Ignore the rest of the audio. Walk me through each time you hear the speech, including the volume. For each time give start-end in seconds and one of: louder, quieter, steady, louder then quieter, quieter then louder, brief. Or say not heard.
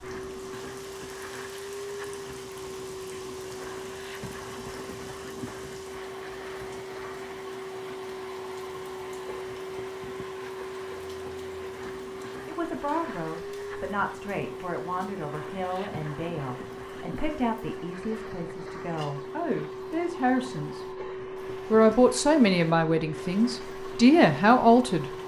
12.4-25.1 louder.